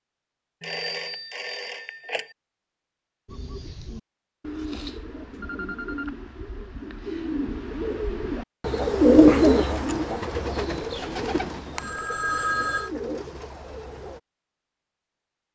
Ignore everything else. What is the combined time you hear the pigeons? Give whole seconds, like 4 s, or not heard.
11 s.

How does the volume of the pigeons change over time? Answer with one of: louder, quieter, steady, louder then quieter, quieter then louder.
louder then quieter.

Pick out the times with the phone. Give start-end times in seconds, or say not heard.
0.6-2.2, 5.4-6.2, 11.8-12.9.